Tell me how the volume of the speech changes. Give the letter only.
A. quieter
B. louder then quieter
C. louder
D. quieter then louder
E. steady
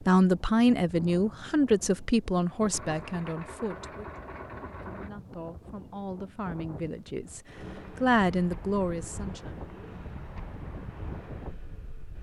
D.